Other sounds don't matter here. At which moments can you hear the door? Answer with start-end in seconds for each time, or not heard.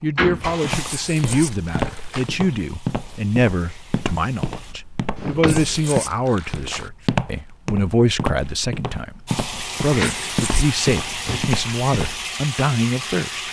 0.1-0.9, 5.2-5.7, 9.5-10.2.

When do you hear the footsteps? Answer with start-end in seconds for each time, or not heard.
0.6-12.2.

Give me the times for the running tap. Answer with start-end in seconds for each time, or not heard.
0.0-4.8, 9.2-13.4.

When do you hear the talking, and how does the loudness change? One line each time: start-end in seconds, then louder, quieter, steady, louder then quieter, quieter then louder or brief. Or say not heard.
0.0-13.4 steady.